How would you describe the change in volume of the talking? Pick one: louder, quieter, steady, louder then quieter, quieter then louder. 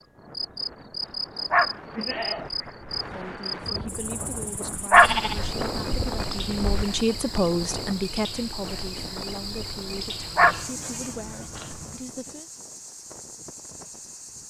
louder then quieter.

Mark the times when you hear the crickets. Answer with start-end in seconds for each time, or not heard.
0.0-14.4.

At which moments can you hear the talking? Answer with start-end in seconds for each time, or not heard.
3.0-12.5.